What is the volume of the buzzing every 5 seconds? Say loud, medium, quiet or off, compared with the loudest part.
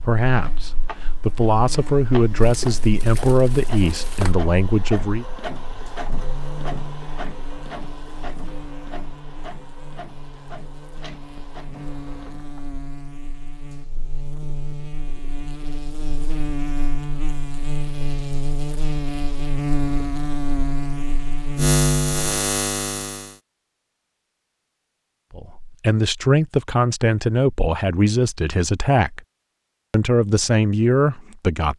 quiet, quiet, quiet, medium, loud, off, off.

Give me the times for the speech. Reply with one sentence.
The speech can be heard from 0.0 to 5.2 s, from 25.3 to 29.2 s and from 29.9 to 31.7 s.